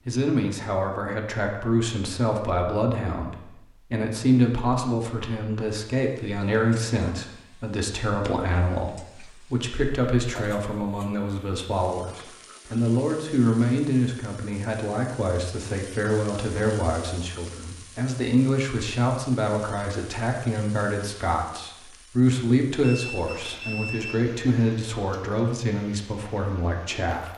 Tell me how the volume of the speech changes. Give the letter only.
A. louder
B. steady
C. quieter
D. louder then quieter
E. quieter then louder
B.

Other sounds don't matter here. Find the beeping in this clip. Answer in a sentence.
The beeping can be heard from 22.9 to 24.1 s.